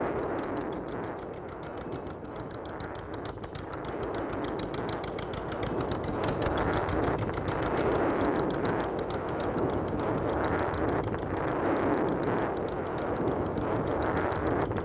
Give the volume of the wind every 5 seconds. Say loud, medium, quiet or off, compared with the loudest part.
medium, loud, loud.